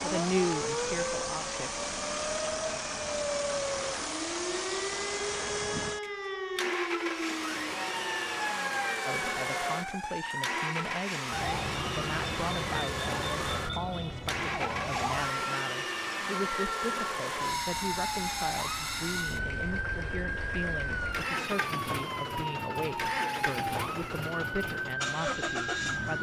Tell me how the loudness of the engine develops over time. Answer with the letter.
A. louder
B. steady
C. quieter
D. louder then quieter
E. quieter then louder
B.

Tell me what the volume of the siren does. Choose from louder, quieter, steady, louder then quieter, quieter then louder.
steady.